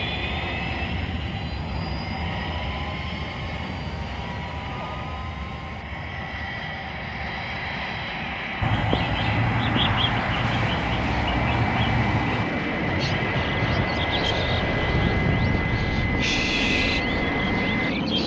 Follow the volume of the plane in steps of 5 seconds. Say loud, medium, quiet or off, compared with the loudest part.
medium, medium, loud, loud.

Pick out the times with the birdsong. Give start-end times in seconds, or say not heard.
8.6-18.2.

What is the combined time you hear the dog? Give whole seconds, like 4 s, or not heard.
not heard.